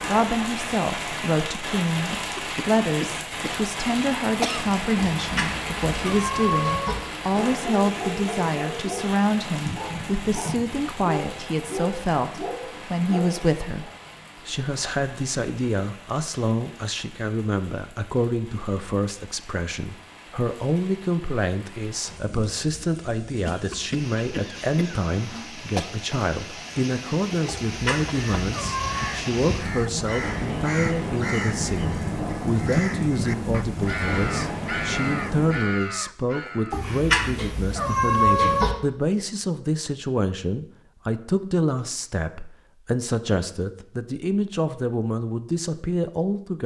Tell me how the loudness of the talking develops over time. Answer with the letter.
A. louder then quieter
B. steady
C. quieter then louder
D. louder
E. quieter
B.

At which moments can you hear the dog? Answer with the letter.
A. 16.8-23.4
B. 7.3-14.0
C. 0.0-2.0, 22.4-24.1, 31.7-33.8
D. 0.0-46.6
B.